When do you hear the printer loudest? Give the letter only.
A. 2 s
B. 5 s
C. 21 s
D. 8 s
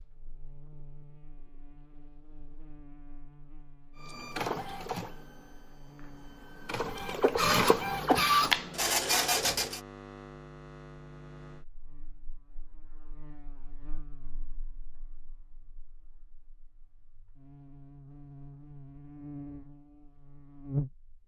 D.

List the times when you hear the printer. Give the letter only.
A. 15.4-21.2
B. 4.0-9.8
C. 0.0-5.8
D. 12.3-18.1
B.